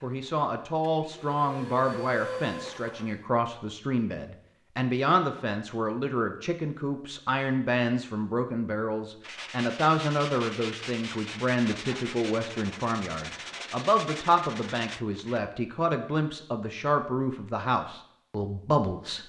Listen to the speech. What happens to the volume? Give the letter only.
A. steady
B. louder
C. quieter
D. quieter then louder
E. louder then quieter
A.